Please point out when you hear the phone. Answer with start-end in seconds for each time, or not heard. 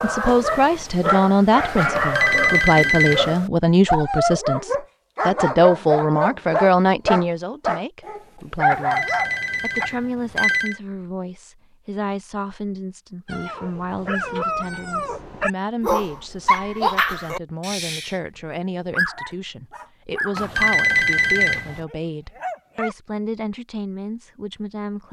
1.9-3.3, 8.7-10.8, 20.4-21.8.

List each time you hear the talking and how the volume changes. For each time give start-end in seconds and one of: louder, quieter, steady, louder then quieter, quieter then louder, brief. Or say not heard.
0.0-25.0 quieter.